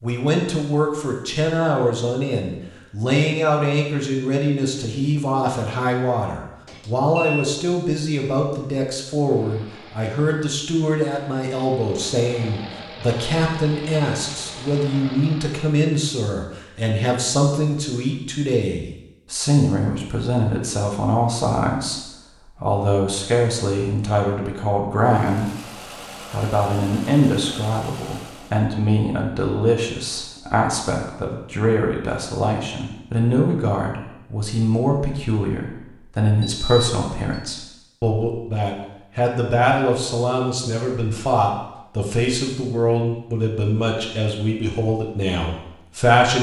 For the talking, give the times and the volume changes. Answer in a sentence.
The talking can be heard from 0.0 to 25.5 s, at a steady volume; and from 26.3 to 46.3 s, at a steady volume.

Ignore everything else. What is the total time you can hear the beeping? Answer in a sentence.
The beeping can be heard for 2 seconds in total.